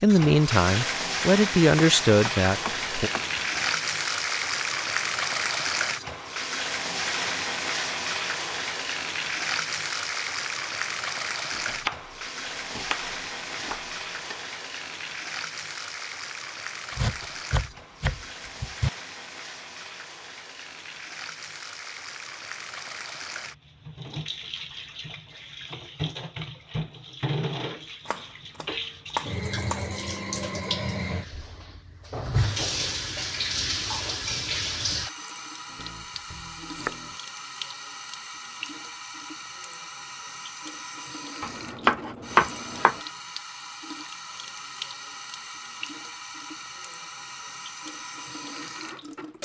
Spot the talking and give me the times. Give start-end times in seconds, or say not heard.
0.0-3.1.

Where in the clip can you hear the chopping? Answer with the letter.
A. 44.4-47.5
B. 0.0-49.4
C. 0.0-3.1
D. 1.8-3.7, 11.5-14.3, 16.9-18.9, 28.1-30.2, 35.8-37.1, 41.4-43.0
D.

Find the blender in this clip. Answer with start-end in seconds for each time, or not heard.
not heard.